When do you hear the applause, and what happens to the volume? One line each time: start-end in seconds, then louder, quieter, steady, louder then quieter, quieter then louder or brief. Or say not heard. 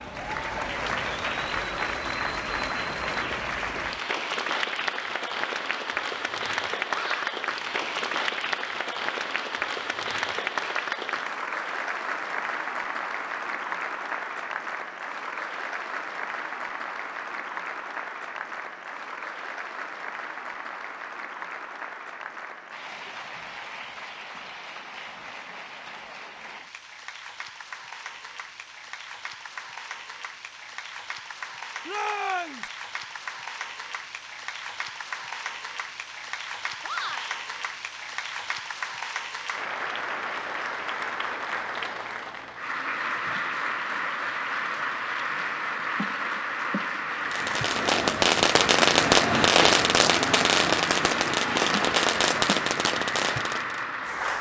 0.0-54.3 quieter then louder.